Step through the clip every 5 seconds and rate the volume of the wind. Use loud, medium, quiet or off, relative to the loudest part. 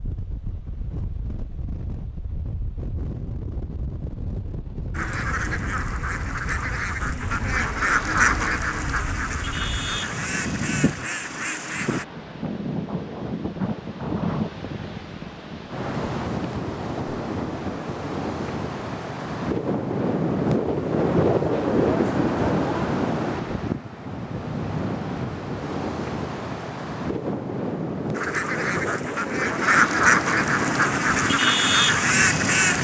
quiet, quiet, medium, medium, loud, medium, medium.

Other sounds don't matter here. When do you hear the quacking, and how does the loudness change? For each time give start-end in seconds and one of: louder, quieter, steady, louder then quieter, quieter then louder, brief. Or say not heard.
4.9-12.1 louder then quieter
28.1-32.7 louder.